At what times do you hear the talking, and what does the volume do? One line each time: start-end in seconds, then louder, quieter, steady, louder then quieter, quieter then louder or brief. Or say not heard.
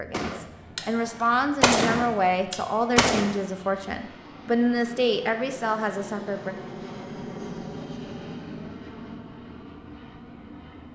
0.0-6.5 steady.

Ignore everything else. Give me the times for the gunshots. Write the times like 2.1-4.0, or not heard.
0.1-0.8, 1.6-3.4.